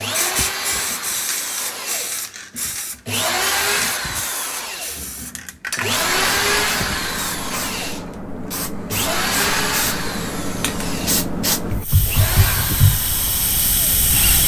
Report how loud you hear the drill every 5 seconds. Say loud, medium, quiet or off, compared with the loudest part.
loud, loud, medium.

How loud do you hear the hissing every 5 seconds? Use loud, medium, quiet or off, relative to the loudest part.
medium, medium, loud.